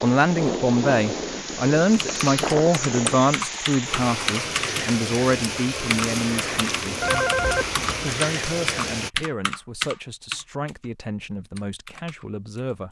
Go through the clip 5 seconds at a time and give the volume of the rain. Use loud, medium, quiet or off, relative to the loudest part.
loud, loud, off.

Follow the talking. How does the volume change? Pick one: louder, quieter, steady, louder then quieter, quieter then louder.
quieter.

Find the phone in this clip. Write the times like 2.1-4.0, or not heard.
7.0-8.2.